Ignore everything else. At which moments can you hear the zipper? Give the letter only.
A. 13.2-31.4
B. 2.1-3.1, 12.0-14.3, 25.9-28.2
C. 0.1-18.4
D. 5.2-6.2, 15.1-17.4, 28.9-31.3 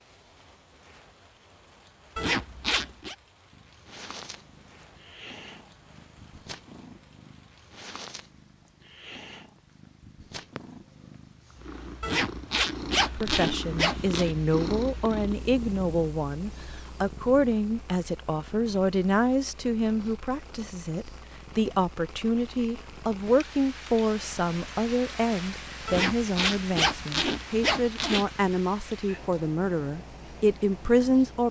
B.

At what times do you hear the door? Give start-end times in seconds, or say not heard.
not heard.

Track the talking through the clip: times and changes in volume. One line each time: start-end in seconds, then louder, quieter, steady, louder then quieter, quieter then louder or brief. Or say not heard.
13.2-31.4 steady.